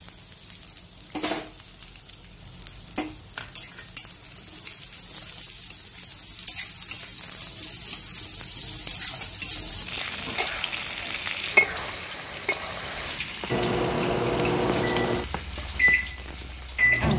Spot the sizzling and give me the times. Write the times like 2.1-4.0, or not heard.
0.0-17.1.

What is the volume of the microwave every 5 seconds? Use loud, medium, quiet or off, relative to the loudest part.
off, off, loud, loud.